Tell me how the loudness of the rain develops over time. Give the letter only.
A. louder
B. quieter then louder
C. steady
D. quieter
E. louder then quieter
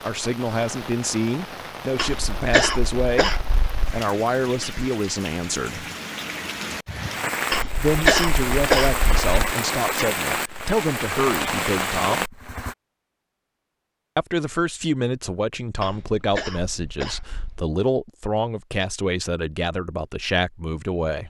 A.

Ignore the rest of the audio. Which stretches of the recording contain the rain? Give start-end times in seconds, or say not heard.
0.0-12.8.